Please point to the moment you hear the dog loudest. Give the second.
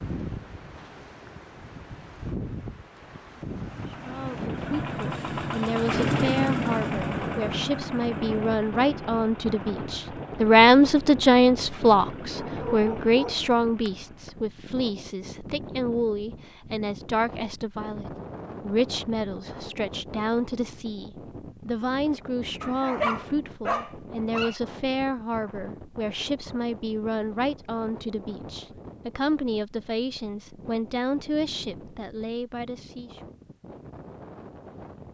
23 s.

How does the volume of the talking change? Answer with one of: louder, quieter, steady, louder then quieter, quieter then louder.
louder then quieter.